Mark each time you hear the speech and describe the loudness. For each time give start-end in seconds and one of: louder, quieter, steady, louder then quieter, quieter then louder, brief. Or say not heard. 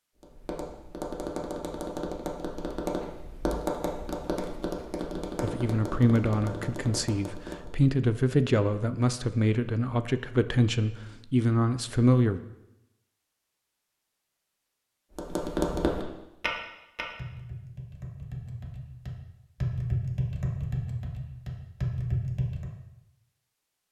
5.4-12.4 steady.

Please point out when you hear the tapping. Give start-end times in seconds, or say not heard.
0.2-7.8, 15.2-22.7.